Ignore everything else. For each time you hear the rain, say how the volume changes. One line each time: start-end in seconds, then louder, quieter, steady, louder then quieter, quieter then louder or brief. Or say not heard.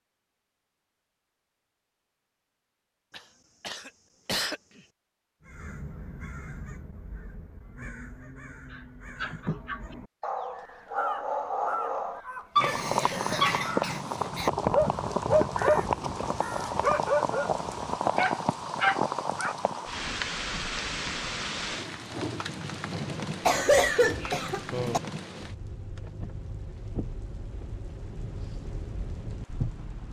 12.6-30.0 quieter.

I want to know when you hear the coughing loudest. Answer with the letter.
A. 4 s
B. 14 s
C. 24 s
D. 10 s
C.